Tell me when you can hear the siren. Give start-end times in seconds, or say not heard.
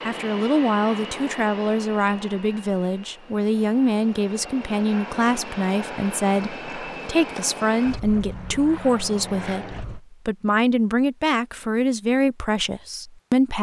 not heard.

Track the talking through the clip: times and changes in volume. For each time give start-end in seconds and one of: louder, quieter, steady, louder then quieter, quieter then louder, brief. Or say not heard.
0.1-13.5 steady.